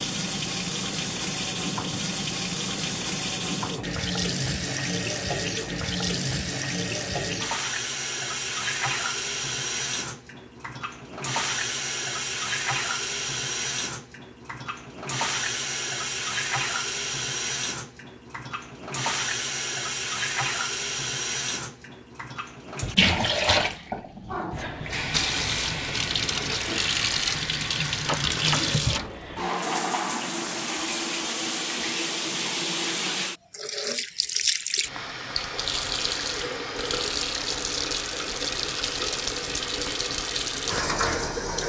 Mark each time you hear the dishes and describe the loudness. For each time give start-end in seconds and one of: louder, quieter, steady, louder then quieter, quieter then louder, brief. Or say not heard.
not heard.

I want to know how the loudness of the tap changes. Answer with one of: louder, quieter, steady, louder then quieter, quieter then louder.
steady.